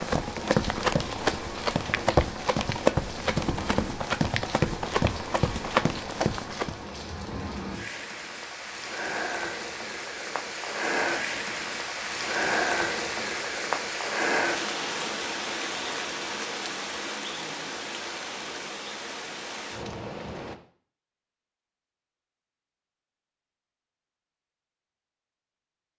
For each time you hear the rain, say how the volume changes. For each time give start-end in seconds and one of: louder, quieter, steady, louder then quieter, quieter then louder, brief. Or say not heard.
0.0-20.6 louder then quieter.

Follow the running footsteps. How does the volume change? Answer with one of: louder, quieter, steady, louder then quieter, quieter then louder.
steady.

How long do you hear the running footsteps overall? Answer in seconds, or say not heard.
7 s.